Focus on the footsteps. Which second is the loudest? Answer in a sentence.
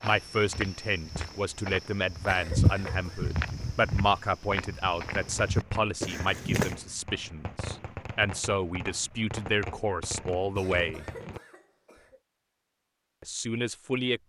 The volume of the footsteps peaks at 3 seconds.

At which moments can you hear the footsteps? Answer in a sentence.
You can hear the footsteps from 0.0 to 6.8 s.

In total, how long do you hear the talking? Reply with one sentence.
The talking can be heard for 12 seconds in total.